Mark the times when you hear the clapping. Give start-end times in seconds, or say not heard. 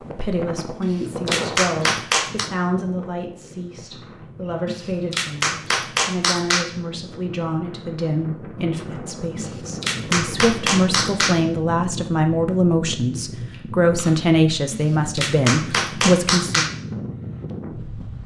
0.8-2.5, 4.7-6.7, 9.3-11.3, 14.7-16.7.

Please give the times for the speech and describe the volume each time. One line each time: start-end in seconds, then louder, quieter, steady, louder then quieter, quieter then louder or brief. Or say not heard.
0.0-16.7 louder.